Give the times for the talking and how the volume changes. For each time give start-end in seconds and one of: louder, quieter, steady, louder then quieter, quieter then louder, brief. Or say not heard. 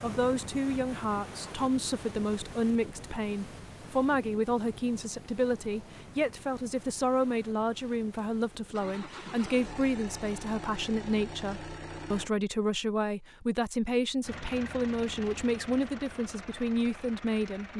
0.0-17.7 steady.